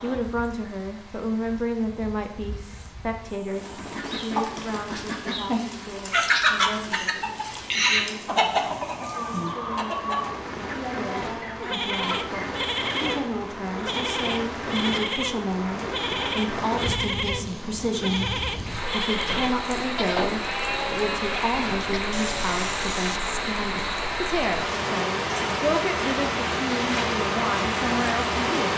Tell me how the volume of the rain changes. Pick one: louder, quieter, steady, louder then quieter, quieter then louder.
louder.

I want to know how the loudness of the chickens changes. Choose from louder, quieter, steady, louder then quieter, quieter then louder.
louder then quieter.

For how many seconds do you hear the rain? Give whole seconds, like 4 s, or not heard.
29 s.